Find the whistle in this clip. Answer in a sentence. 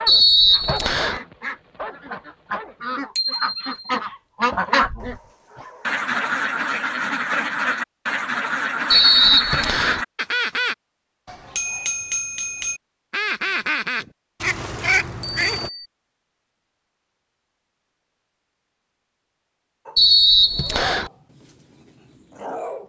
The whistle can be heard from 0.1 to 1.2 s, from 8.9 to 10.1 s and from 19.9 to 21.1 s.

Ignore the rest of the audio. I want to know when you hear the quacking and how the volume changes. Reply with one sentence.
The quacking can be heard from 0.1 to 10.8 s, getting louder; and briefly from 13.1 to 15.7 s.